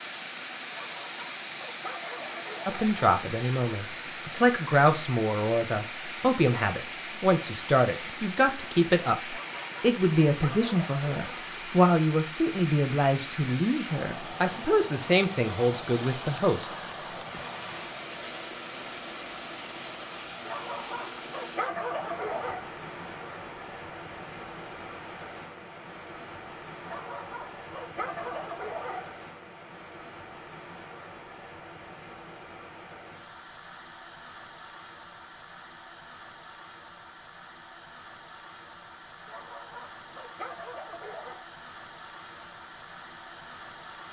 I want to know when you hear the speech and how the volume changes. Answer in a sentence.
You can hear the speech from 2.6 to 16.9 s, at a steady volume.